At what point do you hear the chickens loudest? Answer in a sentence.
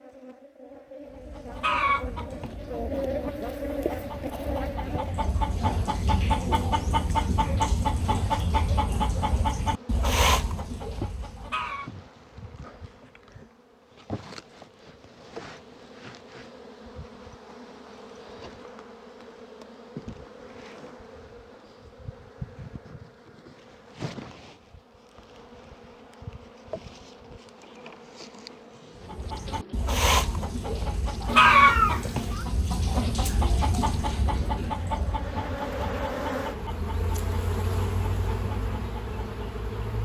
The loudest moment of the chickens is at 32 seconds.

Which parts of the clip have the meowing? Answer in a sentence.
You can hear the meowing from 31.2 to 32.5 s.